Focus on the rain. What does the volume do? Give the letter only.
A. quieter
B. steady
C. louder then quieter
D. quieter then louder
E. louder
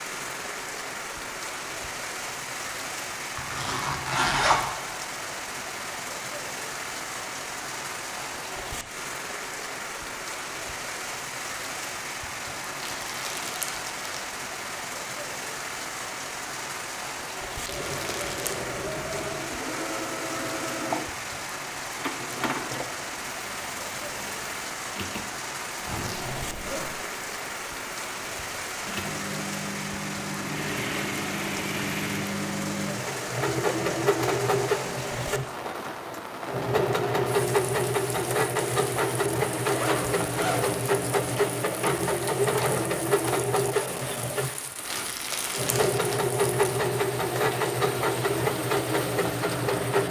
B.